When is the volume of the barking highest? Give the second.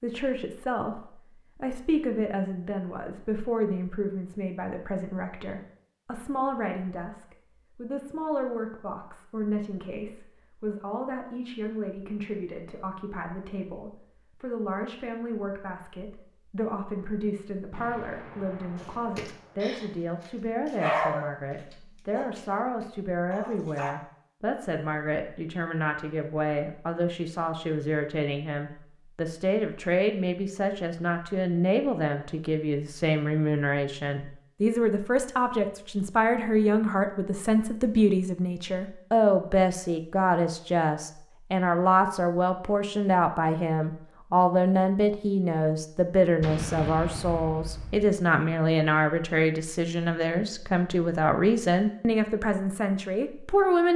21 s.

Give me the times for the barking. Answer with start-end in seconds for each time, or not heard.
18.8-21.3, 22.1-23.9.